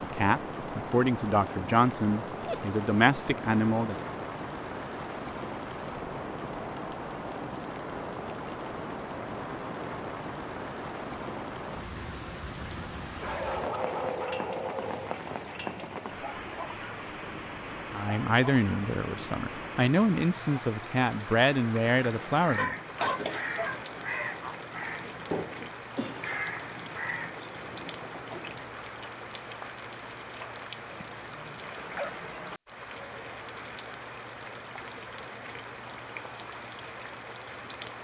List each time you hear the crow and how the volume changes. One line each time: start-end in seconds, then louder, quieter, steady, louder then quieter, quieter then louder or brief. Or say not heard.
22.1-28.7 quieter.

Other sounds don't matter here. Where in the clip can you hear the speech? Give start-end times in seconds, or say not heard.
0.0-4.0, 17.9-22.8.